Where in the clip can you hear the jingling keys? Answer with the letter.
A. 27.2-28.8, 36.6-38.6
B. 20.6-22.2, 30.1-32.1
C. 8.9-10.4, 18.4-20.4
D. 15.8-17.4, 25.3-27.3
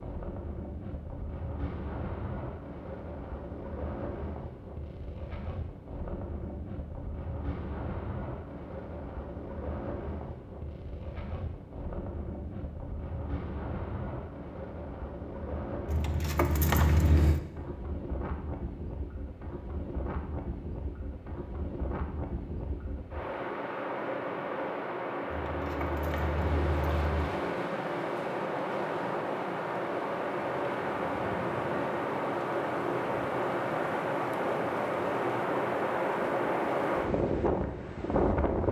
D.